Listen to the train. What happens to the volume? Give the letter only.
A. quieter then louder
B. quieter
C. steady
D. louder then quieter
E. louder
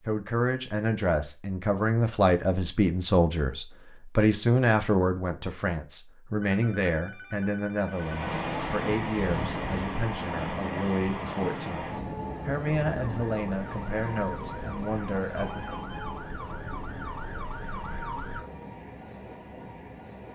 B.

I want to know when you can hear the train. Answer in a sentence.
You can hear the train from 7.8 to 20.3 s.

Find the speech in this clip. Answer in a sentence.
The speech can be heard from 0.0 to 15.8 s.